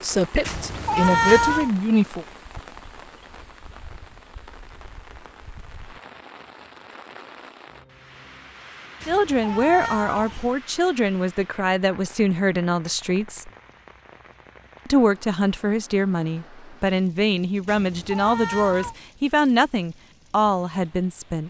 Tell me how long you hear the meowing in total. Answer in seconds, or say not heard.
4 s.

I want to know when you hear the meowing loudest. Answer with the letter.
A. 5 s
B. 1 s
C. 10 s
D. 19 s
B.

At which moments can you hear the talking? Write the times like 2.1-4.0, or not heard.
0.0-2.2, 9.1-13.5, 14.8-21.4.